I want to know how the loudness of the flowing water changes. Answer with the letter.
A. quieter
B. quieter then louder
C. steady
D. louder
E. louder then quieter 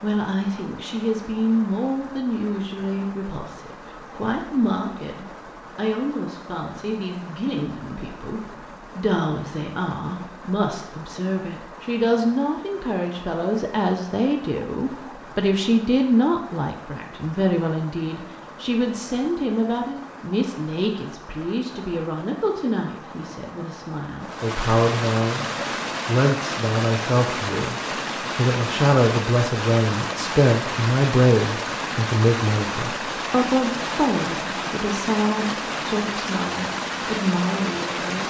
D.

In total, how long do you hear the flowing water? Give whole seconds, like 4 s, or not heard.
38 s.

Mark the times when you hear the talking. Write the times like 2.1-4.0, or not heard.
0.0-38.2.